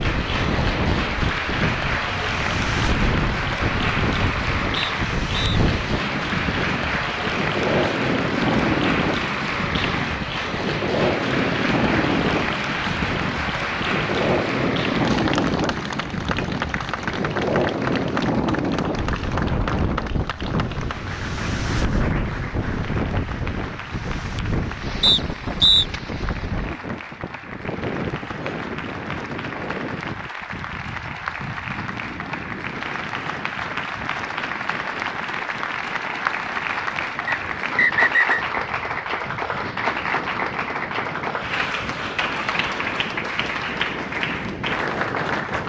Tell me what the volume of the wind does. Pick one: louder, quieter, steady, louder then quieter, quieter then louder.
quieter.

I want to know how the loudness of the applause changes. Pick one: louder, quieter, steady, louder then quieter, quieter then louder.
quieter then louder.